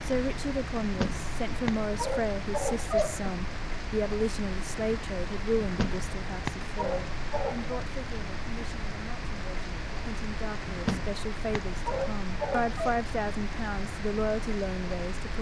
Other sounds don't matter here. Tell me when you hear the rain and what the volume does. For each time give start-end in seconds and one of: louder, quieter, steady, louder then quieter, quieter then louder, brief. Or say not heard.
0.0-15.3 steady.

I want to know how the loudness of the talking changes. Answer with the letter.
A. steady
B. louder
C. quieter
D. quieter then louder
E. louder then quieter
D.